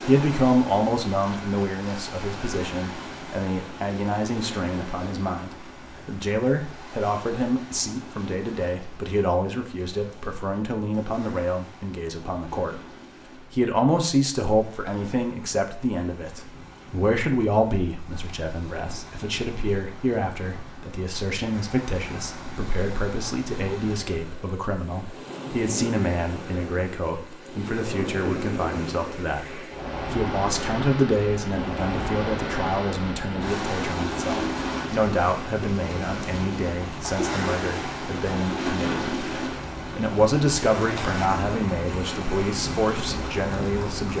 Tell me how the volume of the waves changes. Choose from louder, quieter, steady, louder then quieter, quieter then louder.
quieter then louder.